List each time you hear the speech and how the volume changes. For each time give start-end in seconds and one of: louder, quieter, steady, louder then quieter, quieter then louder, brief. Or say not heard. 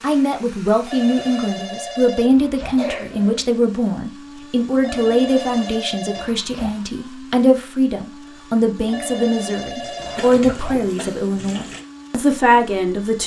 0.0-13.2 steady.